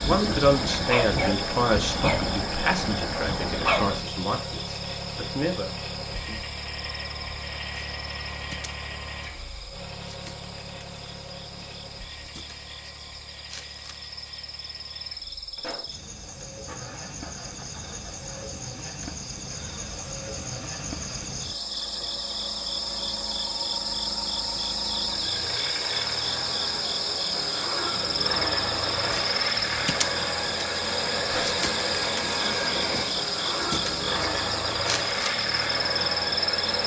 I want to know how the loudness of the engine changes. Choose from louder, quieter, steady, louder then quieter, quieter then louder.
quieter then louder.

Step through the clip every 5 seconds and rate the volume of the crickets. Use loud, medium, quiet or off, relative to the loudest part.
medium, quiet, quiet, medium, loud, loud, loud, loud.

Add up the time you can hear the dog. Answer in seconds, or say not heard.
4 s.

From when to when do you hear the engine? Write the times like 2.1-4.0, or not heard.
0.0-36.8.